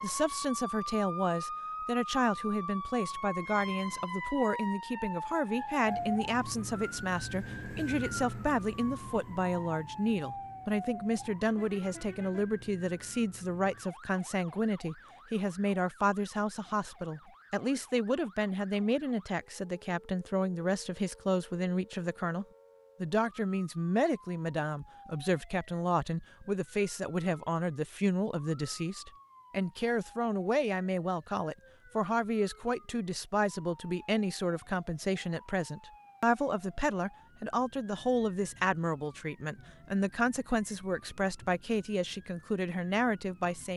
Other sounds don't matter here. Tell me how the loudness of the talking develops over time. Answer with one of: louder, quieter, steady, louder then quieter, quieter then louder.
steady.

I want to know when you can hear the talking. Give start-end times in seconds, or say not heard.
0.0-43.7.